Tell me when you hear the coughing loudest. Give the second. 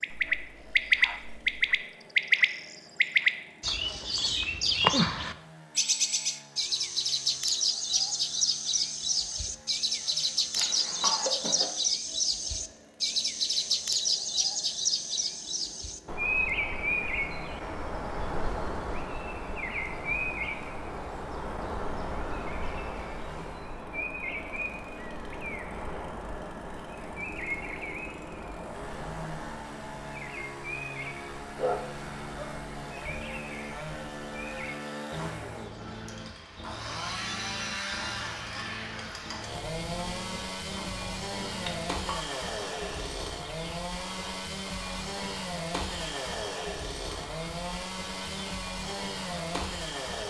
11 s.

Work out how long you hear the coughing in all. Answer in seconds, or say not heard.
2 s.